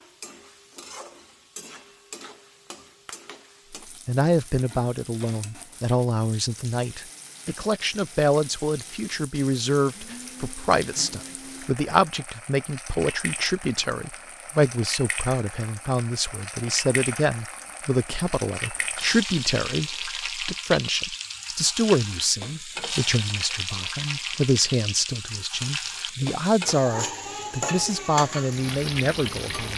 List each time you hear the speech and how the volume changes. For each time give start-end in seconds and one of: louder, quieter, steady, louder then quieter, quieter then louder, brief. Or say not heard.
4.0-29.7 steady.